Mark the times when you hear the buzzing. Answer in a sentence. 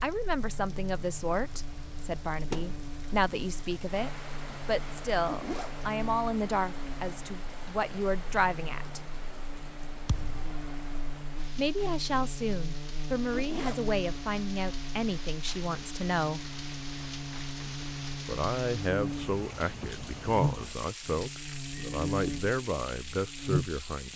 The buzzing can be heard from 0.1 to 24.1 s.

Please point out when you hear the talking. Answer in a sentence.
You can hear the talking from 0.0 to 9.0 s, from 11.6 to 16.4 s and from 18.2 to 24.1 s.